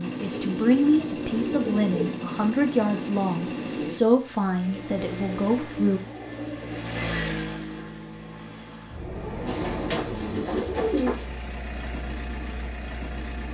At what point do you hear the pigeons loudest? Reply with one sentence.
The loudest moment of the pigeons is at 11 seconds.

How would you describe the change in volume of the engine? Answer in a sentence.
The volume of the engine goes down.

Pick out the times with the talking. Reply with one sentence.
You can hear the talking from 0.0 to 6.0 s.